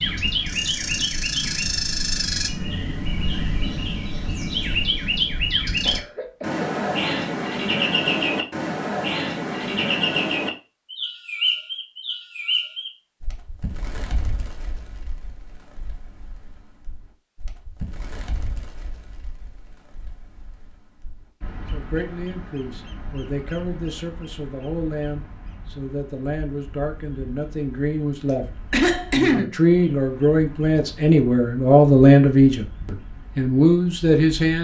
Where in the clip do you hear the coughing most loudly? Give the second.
29 s.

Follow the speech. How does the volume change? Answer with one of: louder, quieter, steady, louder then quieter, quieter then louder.
louder.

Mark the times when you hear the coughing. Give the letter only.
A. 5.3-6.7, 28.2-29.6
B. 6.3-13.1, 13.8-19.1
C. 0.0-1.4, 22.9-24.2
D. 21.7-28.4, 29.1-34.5
A.